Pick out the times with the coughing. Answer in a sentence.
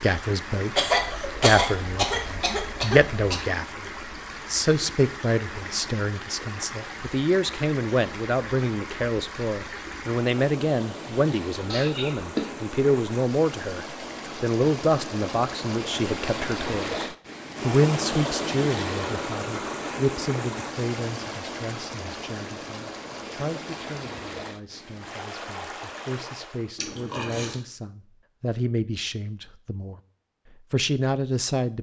You can hear the coughing from 0.8 to 3.4 s, from 11.7 to 12.4 s and from 26.8 to 27.6 s.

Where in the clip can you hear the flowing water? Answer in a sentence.
The flowing water can be heard from 0.0 to 26.8 s.